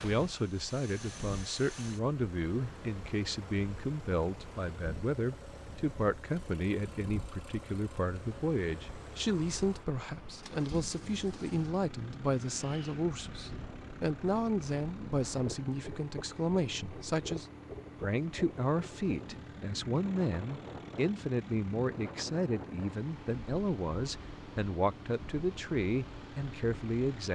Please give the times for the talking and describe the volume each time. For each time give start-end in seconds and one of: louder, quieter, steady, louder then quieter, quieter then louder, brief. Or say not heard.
0.0-27.2 steady.